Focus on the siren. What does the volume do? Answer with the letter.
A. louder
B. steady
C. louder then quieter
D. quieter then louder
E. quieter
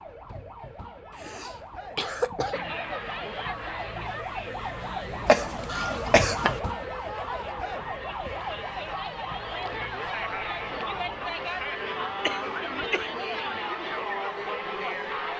C.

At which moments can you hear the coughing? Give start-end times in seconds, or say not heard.
1.1-2.6, 5.2-6.6, 12.2-13.2.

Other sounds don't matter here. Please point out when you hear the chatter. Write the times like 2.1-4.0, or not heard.
2.5-15.3.